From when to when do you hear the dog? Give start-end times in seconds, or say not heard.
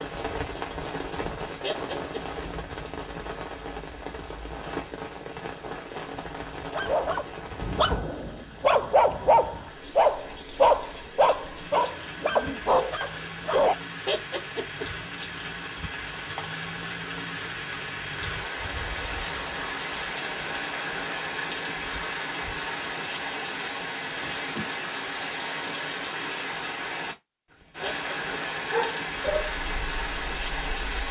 6.7-13.8, 28.7-31.0.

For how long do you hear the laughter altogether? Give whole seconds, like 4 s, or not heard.
2 s.